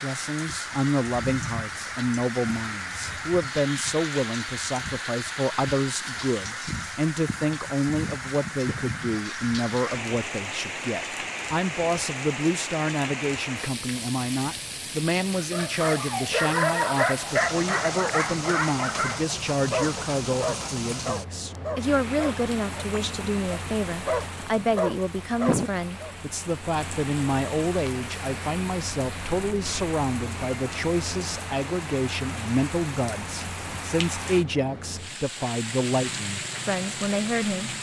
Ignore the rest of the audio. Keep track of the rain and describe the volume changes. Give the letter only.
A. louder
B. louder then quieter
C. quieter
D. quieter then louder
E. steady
E.